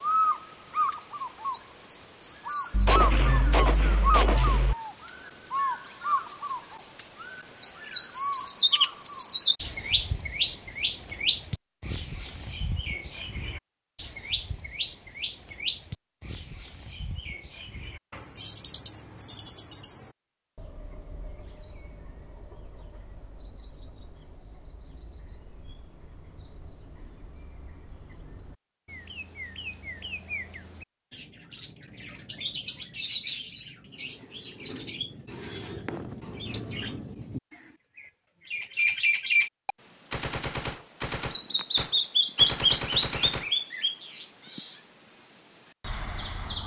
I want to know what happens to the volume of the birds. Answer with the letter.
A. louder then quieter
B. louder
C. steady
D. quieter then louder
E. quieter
D.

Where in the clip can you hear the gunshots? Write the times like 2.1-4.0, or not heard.
2.7-4.8, 39.6-43.5.